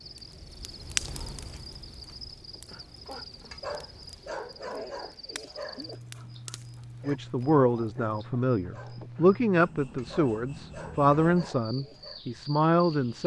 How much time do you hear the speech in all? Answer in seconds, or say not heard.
6 s.